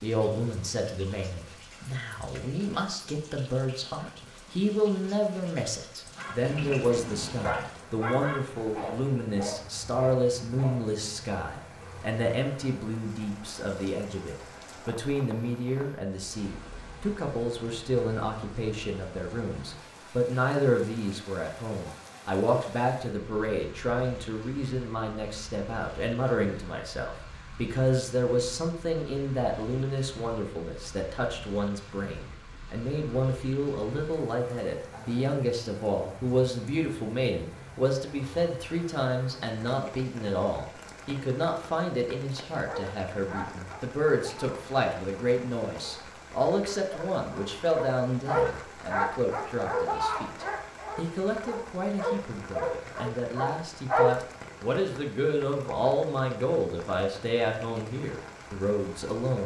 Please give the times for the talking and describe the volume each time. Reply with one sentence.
The talking can be heard from 0.0 to 59.4 s, at a steady volume.